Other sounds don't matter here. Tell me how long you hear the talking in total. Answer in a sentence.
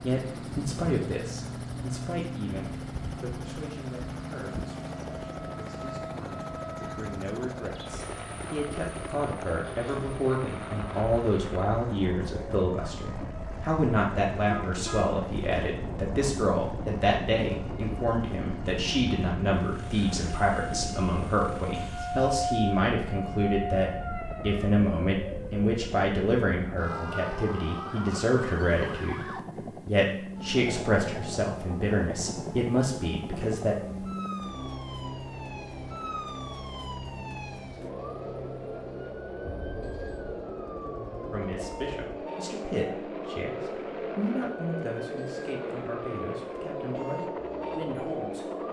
You can hear the talking for 41 seconds altogether.